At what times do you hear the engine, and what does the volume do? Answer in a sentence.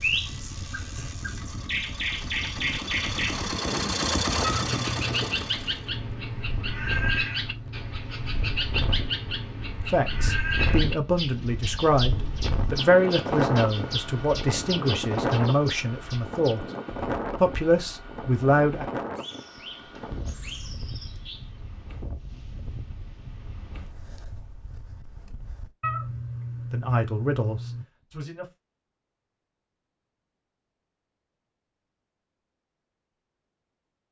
The engine can be heard from 0.0 to 9.7 s, getting louder then quieter.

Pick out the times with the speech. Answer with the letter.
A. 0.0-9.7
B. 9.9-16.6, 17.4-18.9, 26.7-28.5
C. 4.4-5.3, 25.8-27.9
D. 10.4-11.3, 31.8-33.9
B.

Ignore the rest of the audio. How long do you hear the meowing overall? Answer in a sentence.
The meowing can be heard for 3 seconds in total.